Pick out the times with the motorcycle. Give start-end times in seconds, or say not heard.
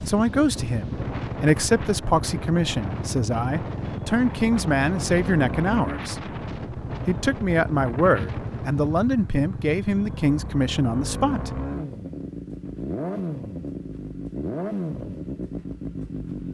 0.1-16.5.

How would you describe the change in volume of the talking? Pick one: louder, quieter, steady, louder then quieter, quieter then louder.
steady.